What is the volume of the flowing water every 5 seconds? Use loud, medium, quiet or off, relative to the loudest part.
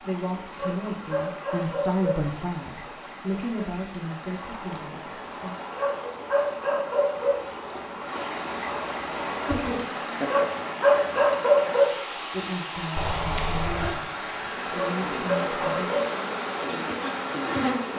medium, loud, loud, loud.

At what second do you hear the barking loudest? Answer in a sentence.
The loudest moment of the barking is at 12 seconds.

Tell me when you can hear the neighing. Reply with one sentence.
You can hear the neighing from 12.9 to 13.9 s.